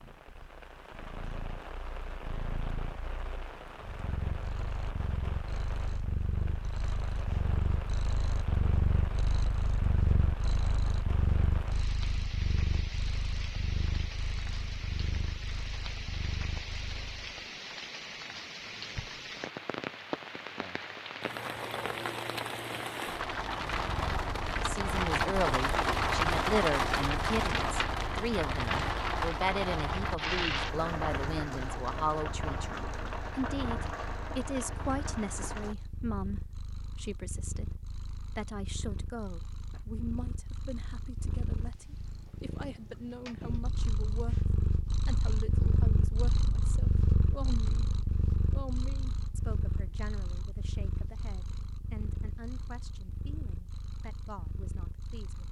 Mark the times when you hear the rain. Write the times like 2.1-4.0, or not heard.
0.0-35.8.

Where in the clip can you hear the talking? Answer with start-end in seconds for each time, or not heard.
24.6-44.4, 45.0-47.9, 48.5-55.4.